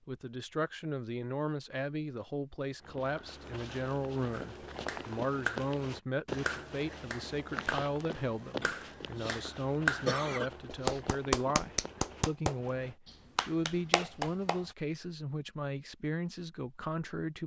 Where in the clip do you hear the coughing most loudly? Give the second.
10 s.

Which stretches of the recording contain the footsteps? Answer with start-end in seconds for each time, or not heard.
2.8-13.0.